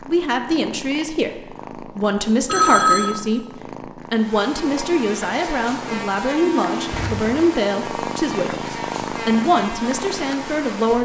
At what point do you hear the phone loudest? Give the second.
3 s.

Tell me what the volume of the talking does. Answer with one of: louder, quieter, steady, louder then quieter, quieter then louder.
steady.